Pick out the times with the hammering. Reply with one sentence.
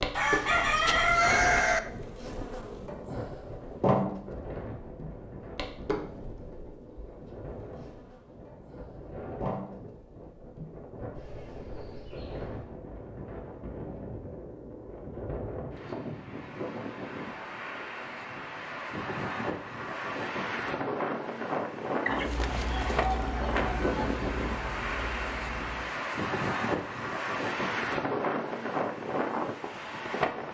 You can't hear the hammering here.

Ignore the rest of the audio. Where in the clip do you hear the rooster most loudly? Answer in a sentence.
The loudest moment of the rooster is at 1 second.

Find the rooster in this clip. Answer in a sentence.
You can hear the rooster from 0.1 to 1.8 s and from 22.1 to 24.1 s.